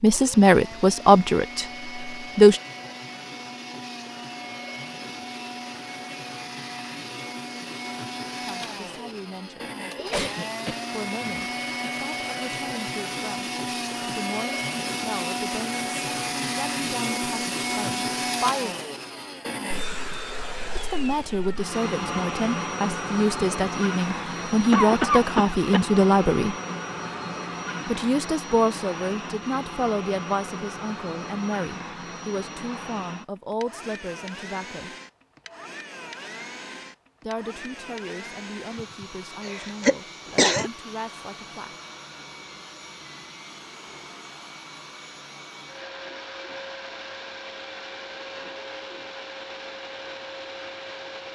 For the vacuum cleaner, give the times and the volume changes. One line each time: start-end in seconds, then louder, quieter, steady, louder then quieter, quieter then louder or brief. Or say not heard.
0.0-51.3 louder then quieter.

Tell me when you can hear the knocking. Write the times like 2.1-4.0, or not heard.
not heard.